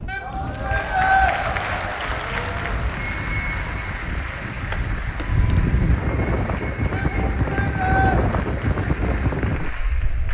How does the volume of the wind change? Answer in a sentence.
The loudness of the wind goes up.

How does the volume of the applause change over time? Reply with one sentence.
The loudness of the applause goes down.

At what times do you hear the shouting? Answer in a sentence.
You can hear the shouting from 0.1 to 1.4 s and from 6.9 to 8.2 s.